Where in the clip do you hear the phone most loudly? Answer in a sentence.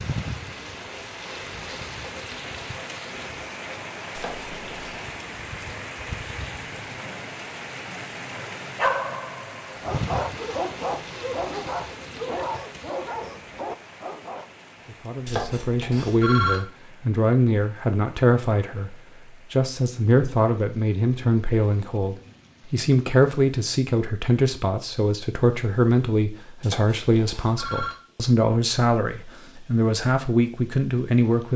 The loudest moment of the phone is at 16 seconds.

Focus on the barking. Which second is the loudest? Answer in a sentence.
The loudest moment of the barking is at 9 seconds.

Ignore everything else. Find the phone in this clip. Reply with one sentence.
The phone can be heard from 4.2 to 5.0 s, from 15.2 to 16.6 s and from 26.6 to 27.9 s.